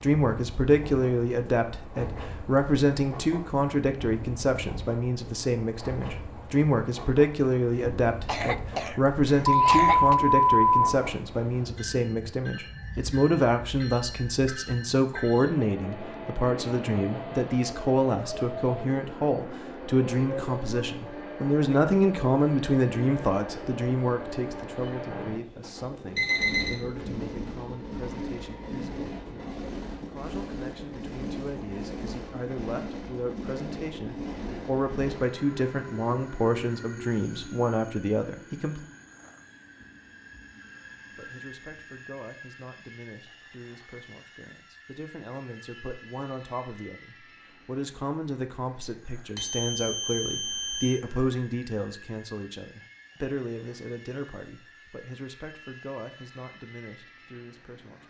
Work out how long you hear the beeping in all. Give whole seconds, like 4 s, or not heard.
4 s.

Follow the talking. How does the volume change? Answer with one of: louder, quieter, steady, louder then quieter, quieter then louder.
quieter.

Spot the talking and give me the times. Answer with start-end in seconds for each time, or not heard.
0.0-38.8, 41.1-58.0.